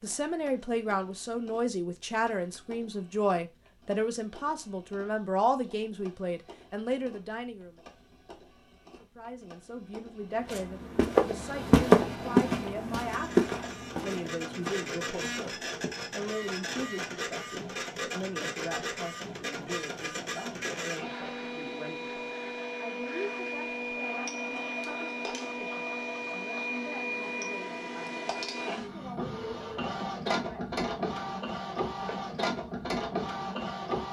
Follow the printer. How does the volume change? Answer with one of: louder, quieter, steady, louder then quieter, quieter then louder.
louder.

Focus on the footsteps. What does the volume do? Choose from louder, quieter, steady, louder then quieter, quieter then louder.
quieter.